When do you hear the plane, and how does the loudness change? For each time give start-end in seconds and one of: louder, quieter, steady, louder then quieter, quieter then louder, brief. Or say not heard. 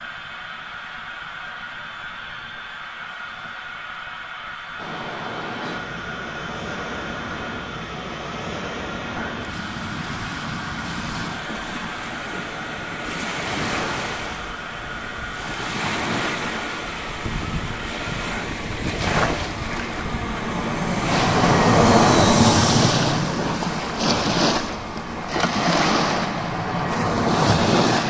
0.0-28.0 louder.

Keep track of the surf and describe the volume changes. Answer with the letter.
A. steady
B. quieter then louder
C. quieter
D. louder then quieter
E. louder
E.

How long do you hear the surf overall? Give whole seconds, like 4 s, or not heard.
23 s.